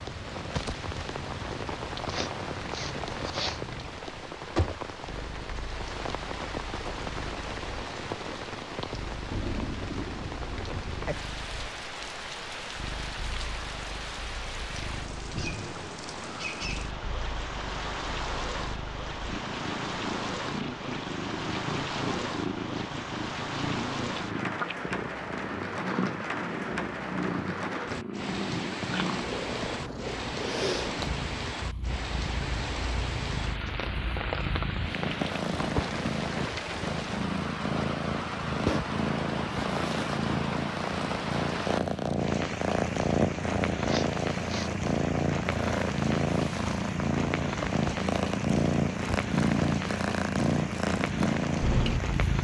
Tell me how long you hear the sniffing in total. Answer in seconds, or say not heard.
2 s.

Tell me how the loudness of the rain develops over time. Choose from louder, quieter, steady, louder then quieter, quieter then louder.
steady.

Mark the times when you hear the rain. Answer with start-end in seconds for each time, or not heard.
0.0-52.3.